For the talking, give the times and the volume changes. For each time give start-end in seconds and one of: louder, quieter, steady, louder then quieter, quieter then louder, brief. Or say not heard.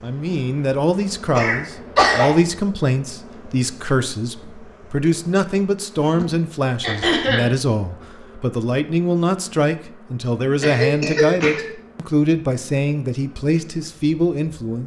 0.0-14.8 steady.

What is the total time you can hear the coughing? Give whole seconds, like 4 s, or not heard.
3 s.